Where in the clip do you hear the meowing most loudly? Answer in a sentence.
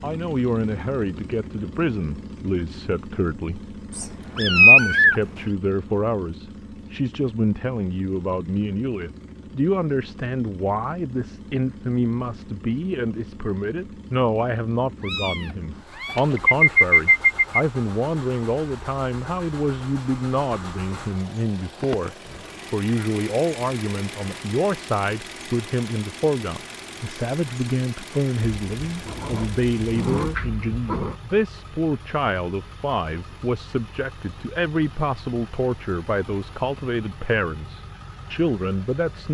The loudest moment of the meowing is at 5 seconds.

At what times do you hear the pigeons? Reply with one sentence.
The pigeons can be heard from 16.1 to 17.6 s.